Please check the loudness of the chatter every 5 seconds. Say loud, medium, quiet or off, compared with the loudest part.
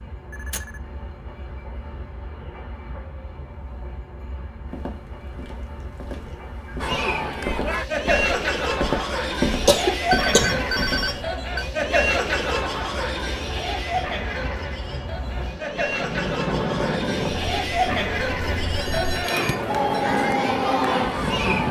off, loud, loud, loud, loud.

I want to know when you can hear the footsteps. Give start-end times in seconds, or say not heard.
4.7-11.2.